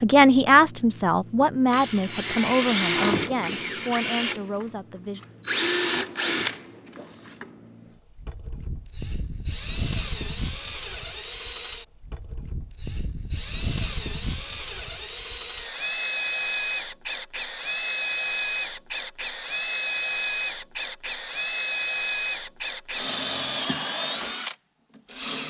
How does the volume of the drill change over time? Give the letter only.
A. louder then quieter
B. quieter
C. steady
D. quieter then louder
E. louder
C.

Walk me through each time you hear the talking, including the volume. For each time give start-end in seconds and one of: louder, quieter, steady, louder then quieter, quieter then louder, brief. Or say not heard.
0.0-5.2 quieter.